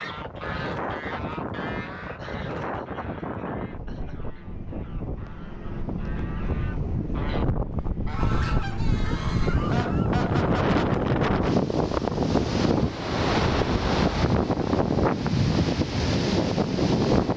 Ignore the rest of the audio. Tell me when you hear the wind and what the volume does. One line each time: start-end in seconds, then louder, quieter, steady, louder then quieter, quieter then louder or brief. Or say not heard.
0.0-17.3 louder.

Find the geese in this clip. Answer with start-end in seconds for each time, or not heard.
0.0-9.6.